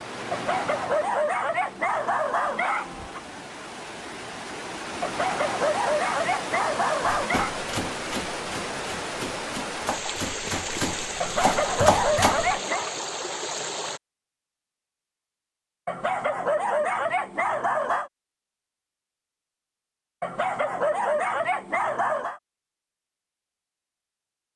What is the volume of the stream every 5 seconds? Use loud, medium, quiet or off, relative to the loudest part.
medium, loud, loud, off, off.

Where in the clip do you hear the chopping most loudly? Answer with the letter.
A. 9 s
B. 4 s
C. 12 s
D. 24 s
C.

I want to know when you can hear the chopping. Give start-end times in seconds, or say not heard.
7.2-12.6.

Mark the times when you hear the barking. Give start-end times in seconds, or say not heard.
0.3-3.2, 5.0-7.5, 11.2-12.9, 15.8-18.1, 20.2-22.4.